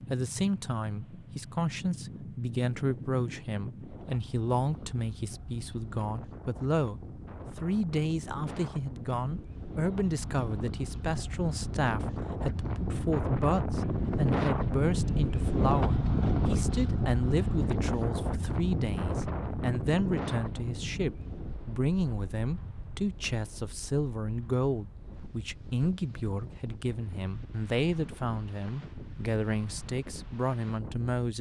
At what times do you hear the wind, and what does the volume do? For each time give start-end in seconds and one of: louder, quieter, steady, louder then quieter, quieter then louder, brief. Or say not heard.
0.0-31.2 louder then quieter.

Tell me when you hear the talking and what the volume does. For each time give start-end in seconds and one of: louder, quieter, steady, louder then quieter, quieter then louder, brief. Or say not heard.
0.1-31.3 steady.